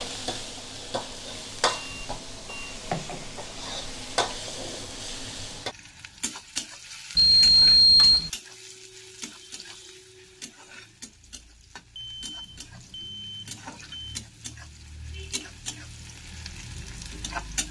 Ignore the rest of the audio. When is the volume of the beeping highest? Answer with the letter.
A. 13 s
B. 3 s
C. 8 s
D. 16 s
C.